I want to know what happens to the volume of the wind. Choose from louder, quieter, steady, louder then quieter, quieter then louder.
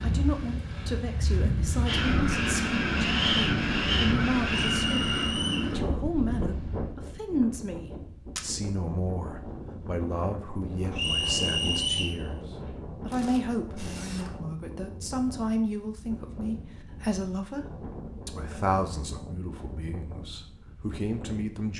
quieter.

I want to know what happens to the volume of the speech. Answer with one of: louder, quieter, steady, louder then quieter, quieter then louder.
steady.